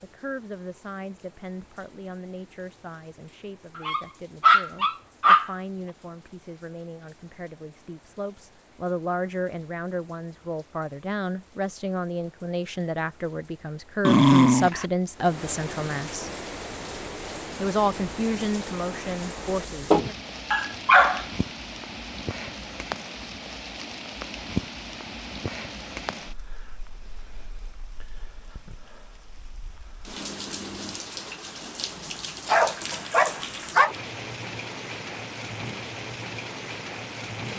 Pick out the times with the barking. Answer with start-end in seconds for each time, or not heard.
3.8-5.5, 14.1-14.8, 19.9-21.2, 32.5-34.0.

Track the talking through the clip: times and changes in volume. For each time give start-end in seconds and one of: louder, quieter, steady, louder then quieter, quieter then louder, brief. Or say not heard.
0.0-16.3 louder
17.6-20.0 brief.